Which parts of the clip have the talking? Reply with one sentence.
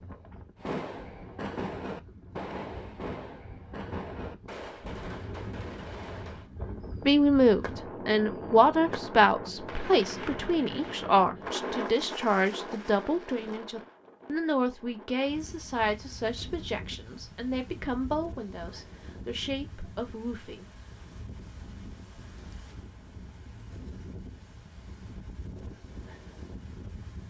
You can hear the talking from 7.0 to 20.6 s.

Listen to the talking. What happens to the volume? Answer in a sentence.
The loudness of the talking goes down.